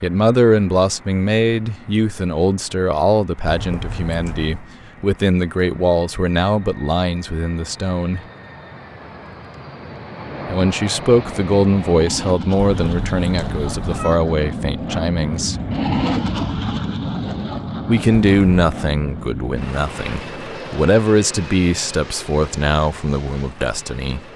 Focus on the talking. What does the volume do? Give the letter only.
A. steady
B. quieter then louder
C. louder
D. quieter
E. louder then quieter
A.